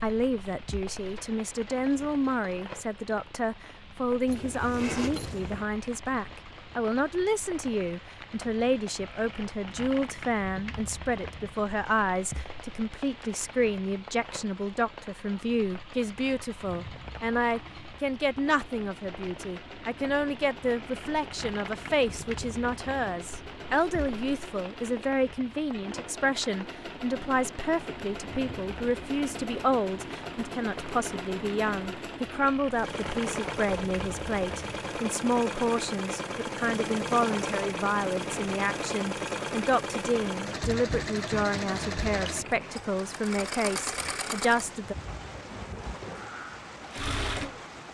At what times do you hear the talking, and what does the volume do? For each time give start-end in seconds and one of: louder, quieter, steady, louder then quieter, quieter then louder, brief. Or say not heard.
0.0-45.0 steady.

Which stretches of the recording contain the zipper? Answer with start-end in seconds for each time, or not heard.
4.2-5.7.